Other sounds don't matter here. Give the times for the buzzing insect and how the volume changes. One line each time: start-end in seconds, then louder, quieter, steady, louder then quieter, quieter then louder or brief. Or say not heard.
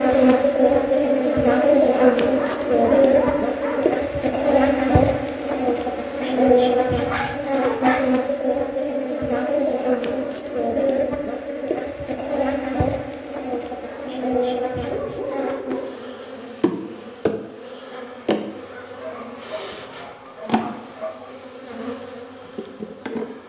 0.0-23.4 quieter.